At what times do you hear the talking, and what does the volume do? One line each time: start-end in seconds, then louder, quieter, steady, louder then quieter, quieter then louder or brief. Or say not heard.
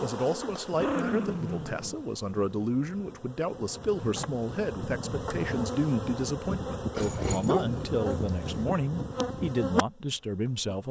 0.0-10.8 steady.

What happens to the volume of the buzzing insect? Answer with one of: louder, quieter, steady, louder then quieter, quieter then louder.
louder.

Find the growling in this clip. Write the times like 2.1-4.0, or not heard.
0.8-2.6, 7.0-8.7.